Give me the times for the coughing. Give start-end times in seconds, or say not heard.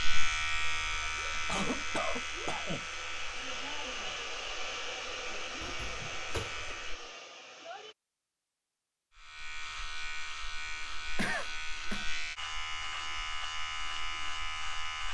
1.4-2.9, 5.6-6.8, 11.2-12.1.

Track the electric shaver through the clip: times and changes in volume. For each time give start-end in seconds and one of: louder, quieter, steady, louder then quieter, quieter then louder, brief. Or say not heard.
0.0-7.1 quieter
9.2-15.0 steady.